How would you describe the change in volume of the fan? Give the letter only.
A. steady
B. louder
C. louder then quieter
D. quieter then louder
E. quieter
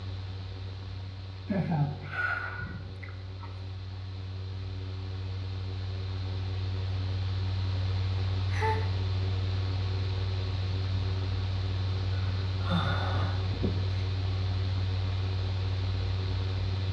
B.